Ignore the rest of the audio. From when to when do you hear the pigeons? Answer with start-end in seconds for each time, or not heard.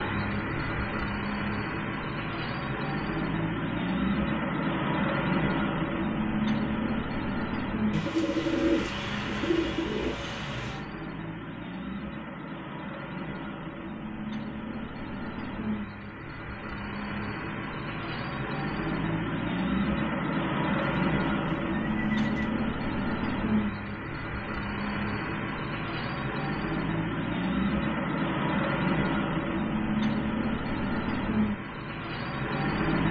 7.9-10.8, 20.7-22.6.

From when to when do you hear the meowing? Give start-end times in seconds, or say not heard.
not heard.